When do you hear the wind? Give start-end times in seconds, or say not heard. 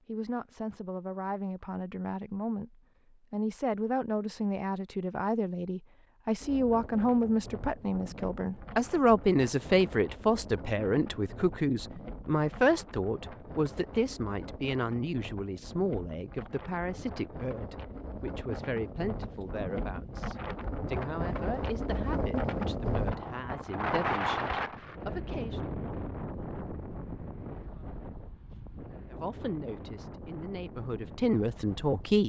6.4-32.2.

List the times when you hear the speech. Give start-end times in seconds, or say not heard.
0.1-25.8, 29.1-32.2.